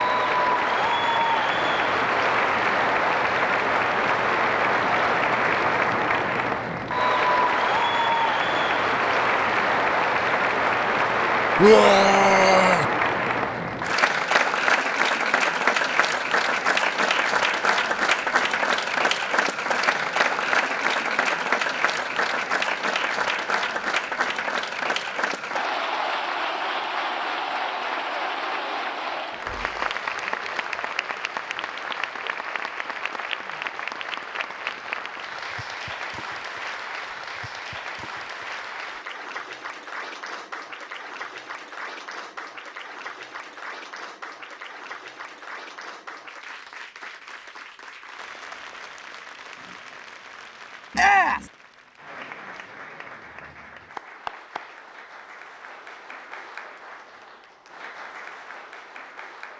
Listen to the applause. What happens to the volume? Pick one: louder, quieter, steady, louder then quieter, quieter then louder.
quieter.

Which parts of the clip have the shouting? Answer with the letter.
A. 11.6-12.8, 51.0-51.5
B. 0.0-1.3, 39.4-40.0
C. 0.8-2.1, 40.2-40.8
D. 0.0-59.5
A.